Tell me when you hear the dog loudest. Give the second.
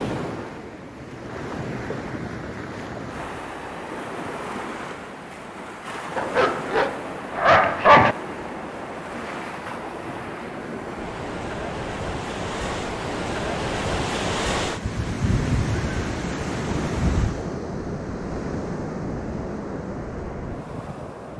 8 s.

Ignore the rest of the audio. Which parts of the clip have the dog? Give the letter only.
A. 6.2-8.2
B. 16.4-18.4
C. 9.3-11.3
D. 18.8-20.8
A.